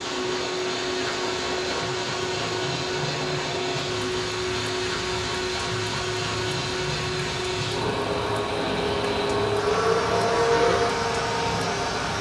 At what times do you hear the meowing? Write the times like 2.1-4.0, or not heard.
not heard.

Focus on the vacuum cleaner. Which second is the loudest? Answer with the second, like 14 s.
10 s.